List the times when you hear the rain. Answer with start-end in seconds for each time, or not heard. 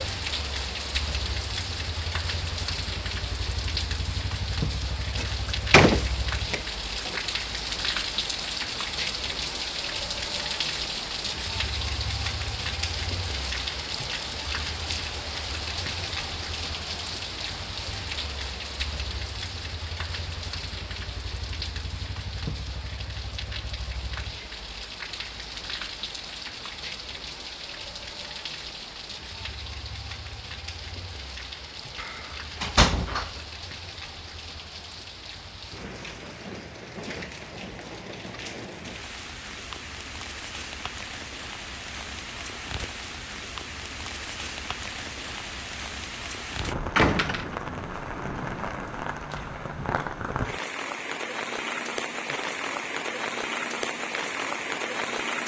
0.0-55.4.